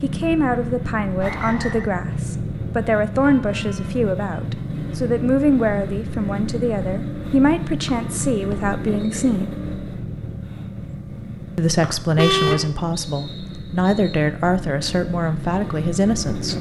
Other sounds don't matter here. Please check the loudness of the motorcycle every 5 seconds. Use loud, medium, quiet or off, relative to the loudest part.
loud, loud, medium, loud.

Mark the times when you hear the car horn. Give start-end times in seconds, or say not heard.
3.2-4.8, 12.2-12.7.